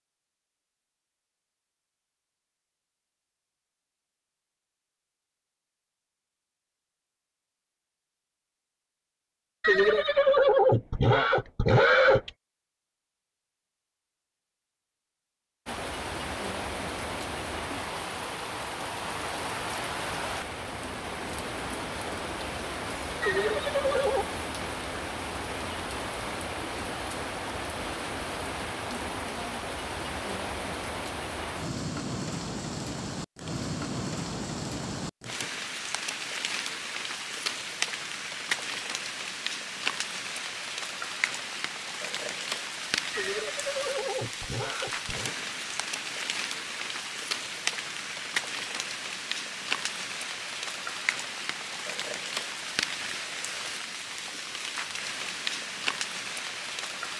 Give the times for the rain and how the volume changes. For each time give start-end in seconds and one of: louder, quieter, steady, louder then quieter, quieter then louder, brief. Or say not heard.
15.7-57.1 steady.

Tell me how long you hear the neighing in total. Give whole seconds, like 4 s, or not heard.
6 s.